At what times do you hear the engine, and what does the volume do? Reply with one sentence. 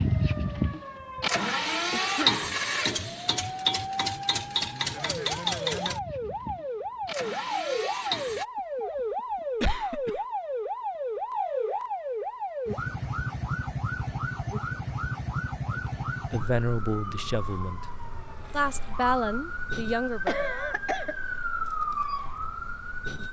The engine can be heard from 0.0 to 8.4 s, getting quieter.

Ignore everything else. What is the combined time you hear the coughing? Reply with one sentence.
You can hear the coughing for 2 seconds altogether.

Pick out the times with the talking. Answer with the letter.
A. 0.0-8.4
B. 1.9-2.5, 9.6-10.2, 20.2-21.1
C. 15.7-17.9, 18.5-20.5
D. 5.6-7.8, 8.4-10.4
C.